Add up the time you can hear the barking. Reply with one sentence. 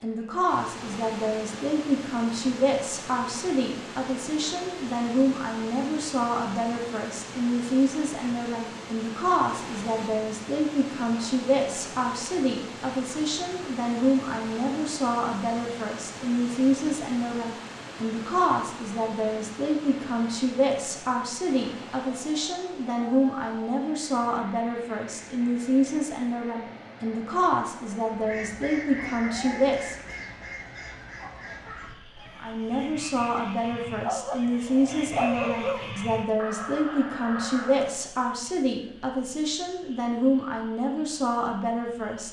You can hear the barking for 2 seconds altogether.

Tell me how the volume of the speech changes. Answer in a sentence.
The loudness of the speech stays about the same.